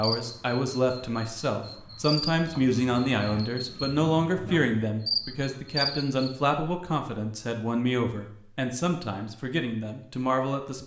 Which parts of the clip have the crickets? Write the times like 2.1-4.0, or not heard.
0.0-6.3.